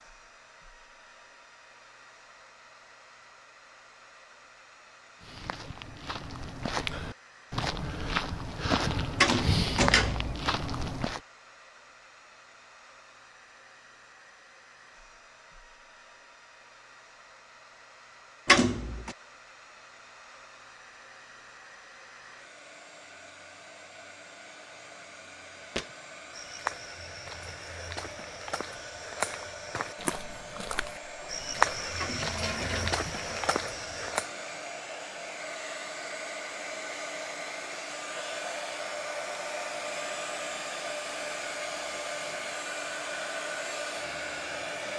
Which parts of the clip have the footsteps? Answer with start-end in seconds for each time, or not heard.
5.2-11.2, 25.6-34.3.